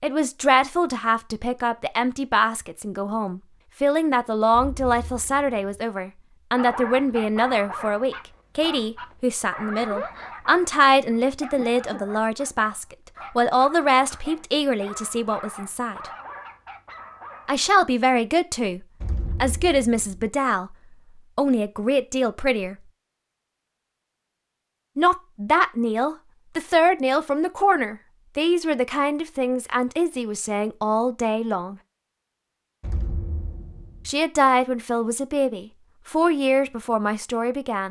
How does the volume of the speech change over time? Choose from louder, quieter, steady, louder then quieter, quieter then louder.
steady.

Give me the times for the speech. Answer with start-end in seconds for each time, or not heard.
0.0-16.0, 17.4-22.8, 24.9-31.8, 34.0-37.8.